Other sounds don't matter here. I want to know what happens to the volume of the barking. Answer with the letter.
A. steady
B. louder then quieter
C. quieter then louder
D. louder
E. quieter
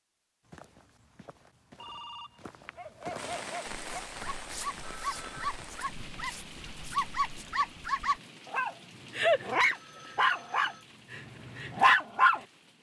D.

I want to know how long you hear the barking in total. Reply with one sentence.
You can hear the barking for 10 seconds altogether.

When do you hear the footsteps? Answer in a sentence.
You can hear the footsteps from 0.4 to 7.5 s.